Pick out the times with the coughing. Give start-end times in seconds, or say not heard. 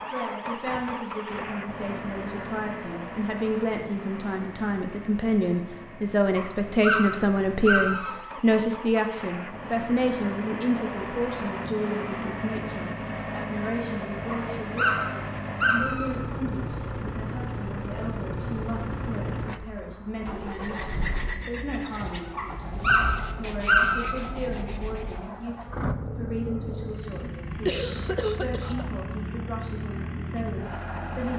27.6-28.9.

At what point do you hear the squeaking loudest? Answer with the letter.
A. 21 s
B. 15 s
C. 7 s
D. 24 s
D.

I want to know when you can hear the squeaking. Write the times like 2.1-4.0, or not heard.
6.3-8.2, 14.3-16.1, 22.4-24.1.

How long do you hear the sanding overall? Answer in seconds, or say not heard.
5 s.